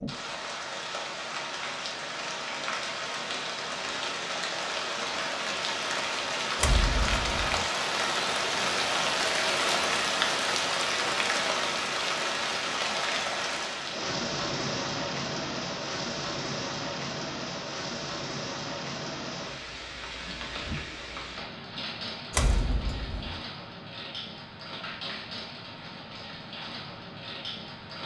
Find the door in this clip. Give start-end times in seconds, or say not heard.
6.5-7.7, 22.3-23.4.